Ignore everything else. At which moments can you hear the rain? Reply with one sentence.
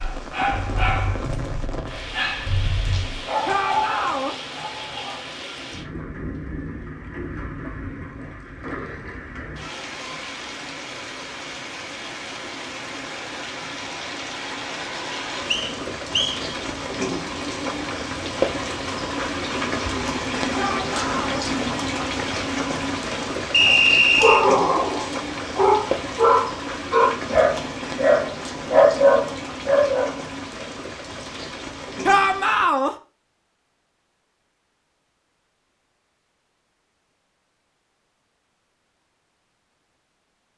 The rain can be heard from 0.0 to 32.8 s.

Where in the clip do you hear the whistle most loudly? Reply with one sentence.
The loudest moment of the whistle is at 24 seconds.